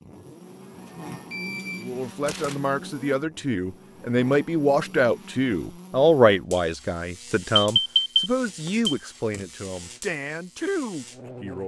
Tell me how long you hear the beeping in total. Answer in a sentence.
You can hear the beeping for 3 seconds altogether.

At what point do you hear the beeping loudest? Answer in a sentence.
The loudest moment of the beeping is at 8 seconds.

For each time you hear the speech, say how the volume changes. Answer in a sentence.
You can hear the speech from 1.8 to 11.6 s, getting louder then quieter.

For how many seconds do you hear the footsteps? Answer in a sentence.
The footsteps can't be heard in this clip.